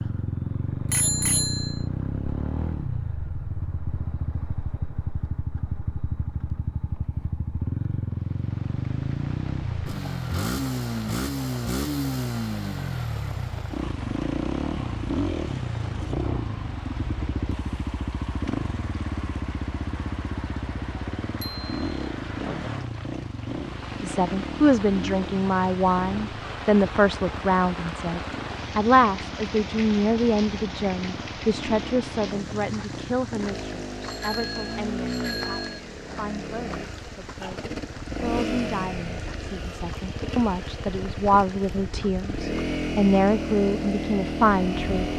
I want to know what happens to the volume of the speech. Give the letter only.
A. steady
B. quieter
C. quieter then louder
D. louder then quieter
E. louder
C.